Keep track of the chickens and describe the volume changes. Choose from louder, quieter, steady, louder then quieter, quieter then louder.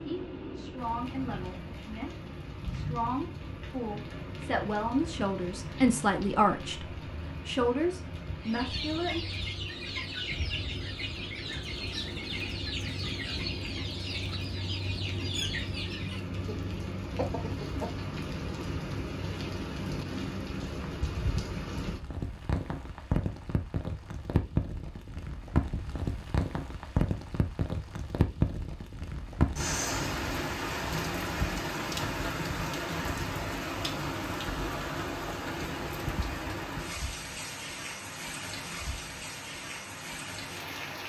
steady.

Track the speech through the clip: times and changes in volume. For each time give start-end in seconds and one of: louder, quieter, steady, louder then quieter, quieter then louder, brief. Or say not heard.
0.1-9.2 louder.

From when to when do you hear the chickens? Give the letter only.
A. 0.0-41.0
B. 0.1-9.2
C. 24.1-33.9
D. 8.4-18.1
D.